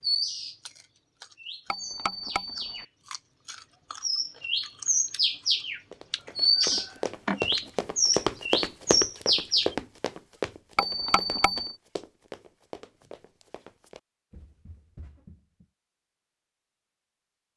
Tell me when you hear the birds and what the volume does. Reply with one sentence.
You can hear the birds from 0.0 to 9.8 s, getting louder.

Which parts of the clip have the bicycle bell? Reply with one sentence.
The bicycle bell can be heard from 1.7 to 2.9 s and from 10.8 to 11.8 s.